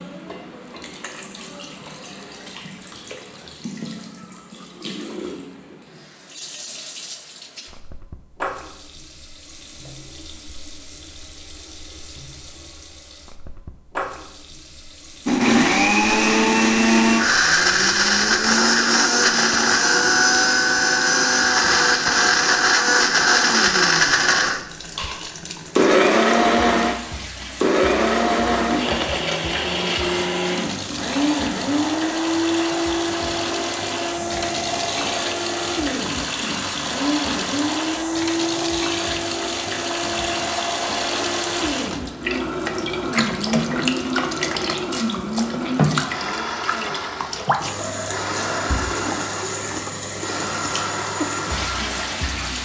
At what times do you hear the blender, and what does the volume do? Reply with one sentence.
The blender can be heard from 15.2 to 52.6 s, getting quieter.